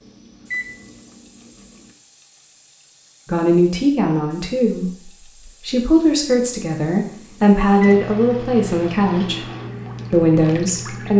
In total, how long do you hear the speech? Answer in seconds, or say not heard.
7 s.